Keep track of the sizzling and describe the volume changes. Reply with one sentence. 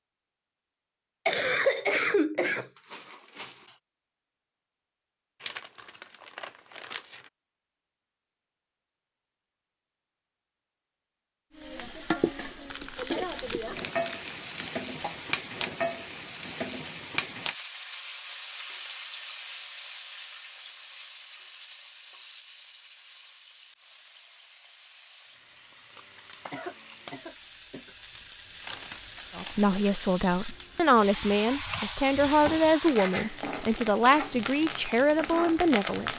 The volume of the sizzling goes down, then up.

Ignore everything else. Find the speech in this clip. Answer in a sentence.
You can hear the speech from 29.4 to 36.1 s.